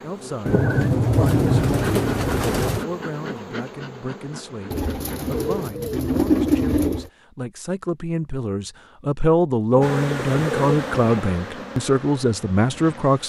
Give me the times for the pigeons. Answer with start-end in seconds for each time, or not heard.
0.5-2.9, 4.7-7.1, 9.7-11.3.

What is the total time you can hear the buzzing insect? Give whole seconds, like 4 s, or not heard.
9 s.